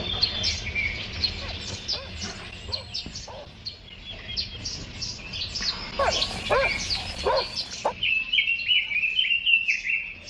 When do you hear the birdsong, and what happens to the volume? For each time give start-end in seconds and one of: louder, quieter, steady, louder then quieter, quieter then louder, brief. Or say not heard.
0.0-10.2 quieter then louder.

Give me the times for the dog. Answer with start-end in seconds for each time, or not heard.
1.4-3.6, 6.0-8.0.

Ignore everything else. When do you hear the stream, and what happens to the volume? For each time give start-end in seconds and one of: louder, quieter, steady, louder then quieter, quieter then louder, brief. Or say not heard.
not heard.